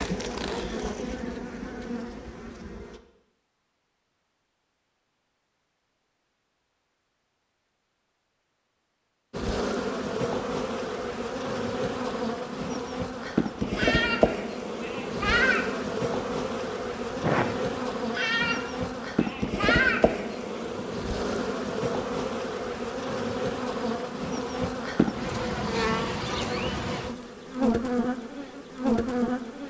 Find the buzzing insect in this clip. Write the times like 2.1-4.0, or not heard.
0.0-3.0, 9.3-29.6.